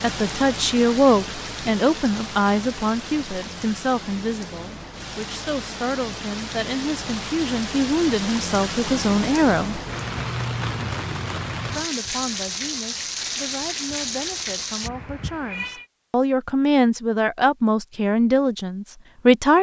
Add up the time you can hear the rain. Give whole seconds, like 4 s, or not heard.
15 s.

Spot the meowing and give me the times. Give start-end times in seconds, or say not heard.
14.8-15.8.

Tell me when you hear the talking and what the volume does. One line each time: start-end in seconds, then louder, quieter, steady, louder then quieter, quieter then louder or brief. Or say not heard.
0.0-9.8 quieter then louder
11.8-19.5 louder.